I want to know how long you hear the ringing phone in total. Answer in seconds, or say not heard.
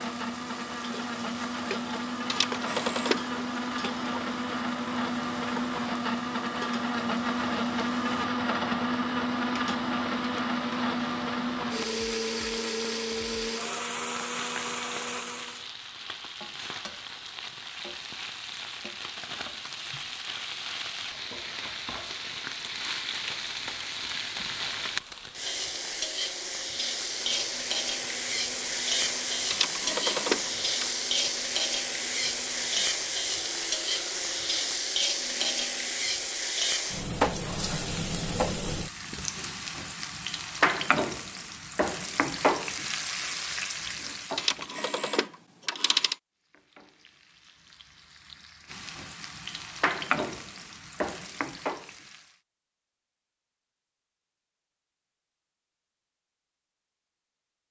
4 s.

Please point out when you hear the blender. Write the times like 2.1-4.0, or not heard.
0.0-15.7, 26.6-36.0.